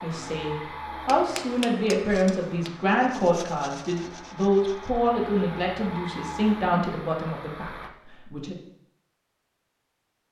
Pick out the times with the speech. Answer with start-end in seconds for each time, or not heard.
0.0-8.6.